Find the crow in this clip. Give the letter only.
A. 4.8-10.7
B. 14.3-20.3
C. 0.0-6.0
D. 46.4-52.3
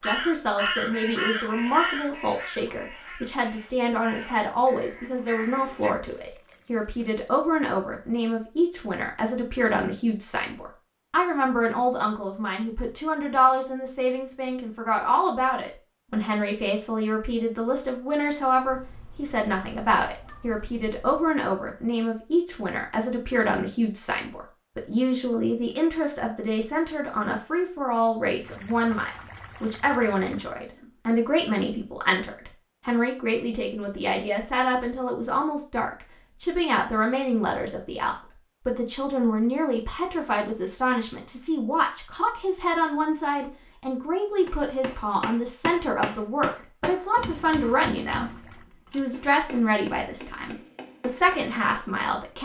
C.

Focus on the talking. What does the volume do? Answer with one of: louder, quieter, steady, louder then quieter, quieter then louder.
steady.